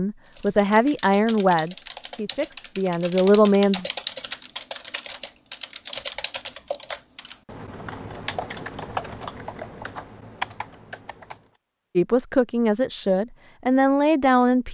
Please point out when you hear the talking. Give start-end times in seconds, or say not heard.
0.0-3.9, 11.9-14.6.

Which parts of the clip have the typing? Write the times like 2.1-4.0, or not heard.
0.2-11.5.